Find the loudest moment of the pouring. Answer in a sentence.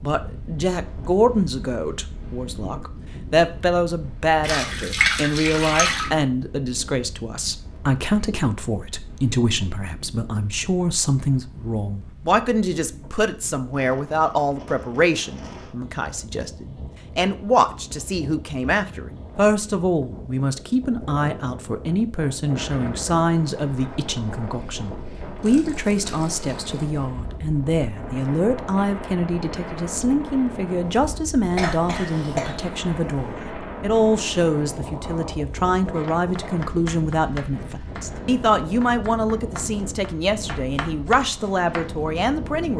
The volume of the pouring peaks at 5 seconds.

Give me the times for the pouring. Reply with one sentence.
The pouring can be heard from 4.4 to 6.1 s and from 25.4 to 26.9 s.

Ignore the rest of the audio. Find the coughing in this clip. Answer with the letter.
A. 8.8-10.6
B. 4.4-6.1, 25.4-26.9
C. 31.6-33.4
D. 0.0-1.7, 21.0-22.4
C.